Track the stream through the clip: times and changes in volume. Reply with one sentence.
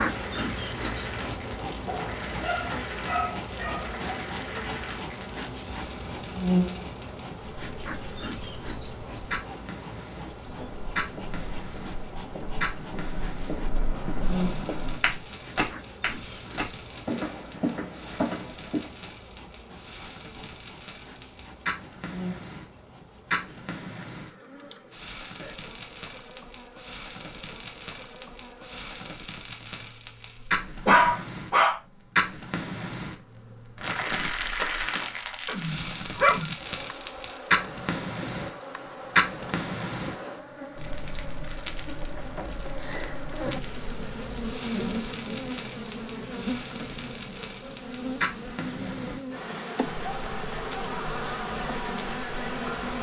The stream can't be heard in this clip.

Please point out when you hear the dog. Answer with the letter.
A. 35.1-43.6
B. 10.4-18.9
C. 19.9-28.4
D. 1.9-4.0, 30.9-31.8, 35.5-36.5
D.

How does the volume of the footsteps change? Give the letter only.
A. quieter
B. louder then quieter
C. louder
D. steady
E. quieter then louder
C.